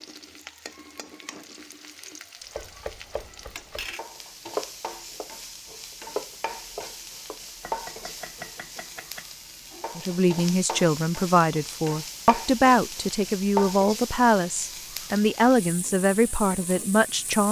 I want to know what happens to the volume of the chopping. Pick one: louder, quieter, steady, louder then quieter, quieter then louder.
louder then quieter.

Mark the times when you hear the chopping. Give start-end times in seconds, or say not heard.
2.5-9.2.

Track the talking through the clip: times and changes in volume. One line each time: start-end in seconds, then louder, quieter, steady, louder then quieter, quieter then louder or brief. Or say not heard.
9.9-17.4 steady.